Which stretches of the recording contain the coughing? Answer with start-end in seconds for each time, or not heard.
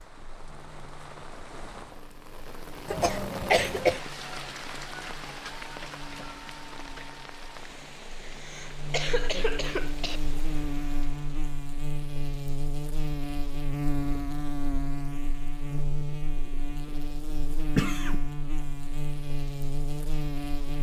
2.9-4.0, 8.2-10.2, 17.8-18.2.